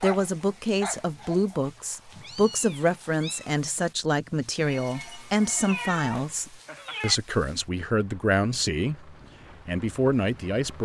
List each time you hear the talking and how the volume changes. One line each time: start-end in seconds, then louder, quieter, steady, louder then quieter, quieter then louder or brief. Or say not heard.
0.0-10.8 steady.